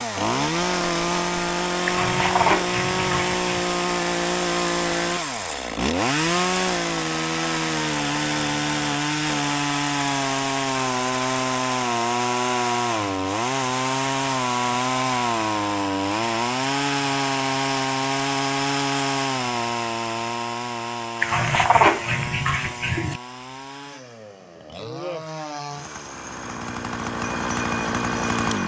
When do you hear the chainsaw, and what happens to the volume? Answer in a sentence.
You can hear the chainsaw from 0.0 to 28.6 s, getting quieter.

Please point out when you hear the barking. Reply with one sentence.
The barking can be heard from 1.9 to 3.6 s and from 21.2 to 23.2 s.